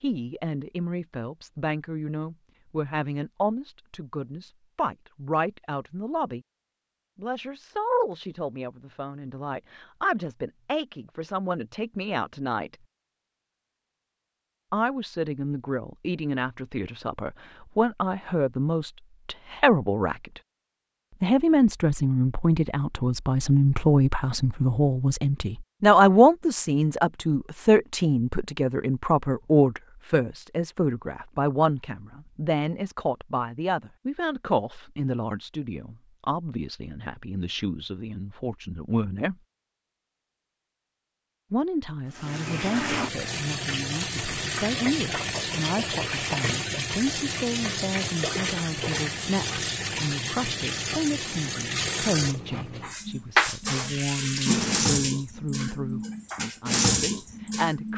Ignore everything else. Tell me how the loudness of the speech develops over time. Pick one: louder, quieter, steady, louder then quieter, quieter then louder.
louder then quieter.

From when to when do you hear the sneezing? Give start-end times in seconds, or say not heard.
not heard.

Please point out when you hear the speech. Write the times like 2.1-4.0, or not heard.
0.0-6.4, 7.2-12.8, 14.7-20.4, 21.2-39.4, 41.5-57.9.